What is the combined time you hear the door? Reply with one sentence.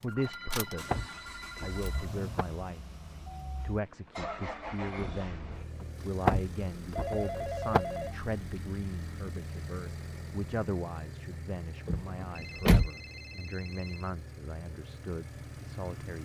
You can hear the door for 4 seconds altogether.